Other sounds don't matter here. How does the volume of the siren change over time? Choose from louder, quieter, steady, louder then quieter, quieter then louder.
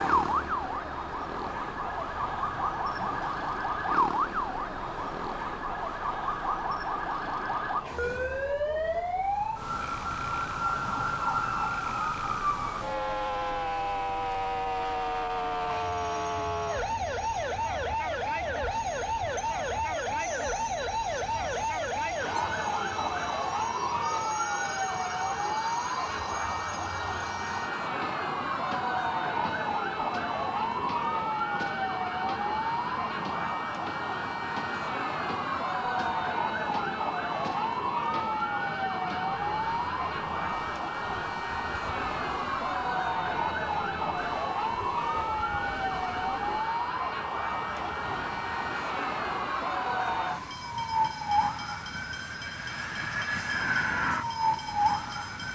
steady.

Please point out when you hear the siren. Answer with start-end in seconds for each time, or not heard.
0.0-55.5.